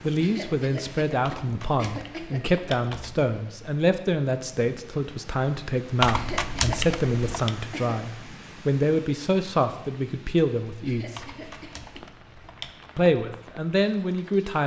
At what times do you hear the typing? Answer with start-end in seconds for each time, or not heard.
1.2-3.2, 6.0-7.5, 11.2-12.9.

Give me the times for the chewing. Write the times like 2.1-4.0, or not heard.
not heard.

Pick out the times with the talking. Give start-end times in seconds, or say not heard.
0.0-11.2, 12.9-14.6.